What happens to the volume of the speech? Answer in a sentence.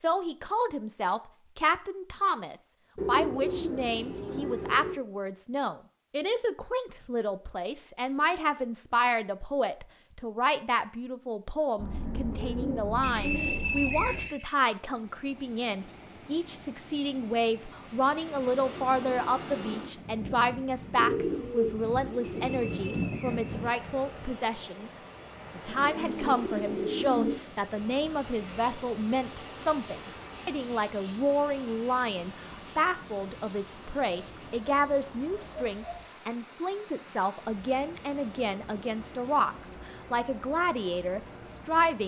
The loudness of the speech stays about the same.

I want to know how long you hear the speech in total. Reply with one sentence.
You can hear the speech for 41 seconds altogether.